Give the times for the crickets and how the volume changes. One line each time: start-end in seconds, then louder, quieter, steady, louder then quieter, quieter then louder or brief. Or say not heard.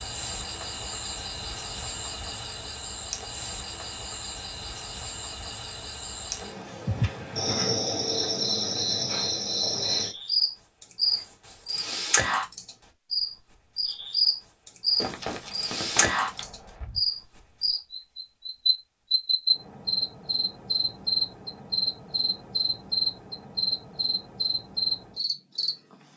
0.0-26.1 louder.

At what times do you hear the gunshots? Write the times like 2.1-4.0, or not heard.
14.9-17.0.